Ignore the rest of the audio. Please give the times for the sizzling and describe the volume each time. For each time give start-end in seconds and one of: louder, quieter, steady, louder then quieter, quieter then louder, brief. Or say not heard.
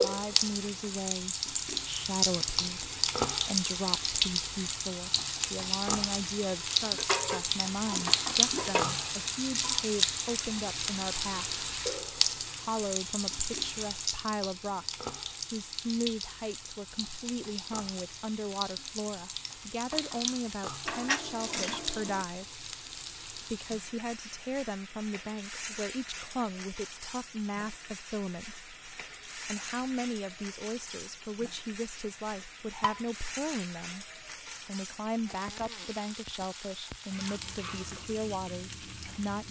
0.0-39.4 quieter.